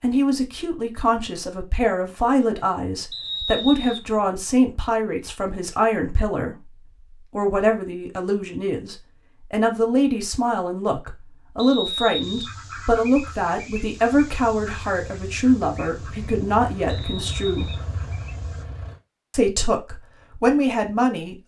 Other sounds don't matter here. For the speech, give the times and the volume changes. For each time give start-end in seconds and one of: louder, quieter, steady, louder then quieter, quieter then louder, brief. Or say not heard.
0.0-17.7 steady
19.3-21.4 brief.